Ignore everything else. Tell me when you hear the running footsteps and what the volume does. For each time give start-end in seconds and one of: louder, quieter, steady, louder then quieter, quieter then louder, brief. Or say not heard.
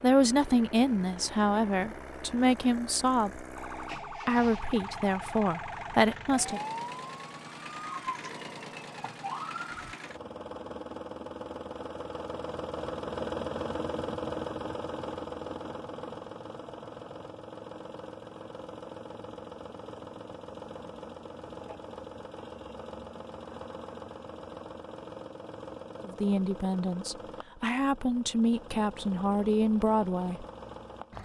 not heard.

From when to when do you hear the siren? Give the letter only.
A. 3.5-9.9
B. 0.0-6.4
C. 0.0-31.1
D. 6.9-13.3
A.